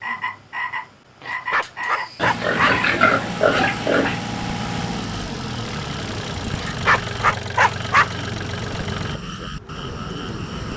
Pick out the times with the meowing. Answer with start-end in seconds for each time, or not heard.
not heard.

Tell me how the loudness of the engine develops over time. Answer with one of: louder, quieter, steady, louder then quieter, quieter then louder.
steady.